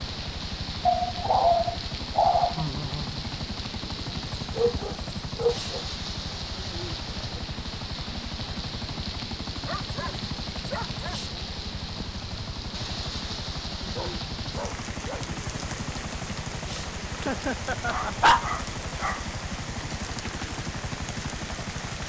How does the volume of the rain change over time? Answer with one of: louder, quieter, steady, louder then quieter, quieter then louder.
steady.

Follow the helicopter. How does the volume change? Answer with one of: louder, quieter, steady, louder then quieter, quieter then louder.
steady.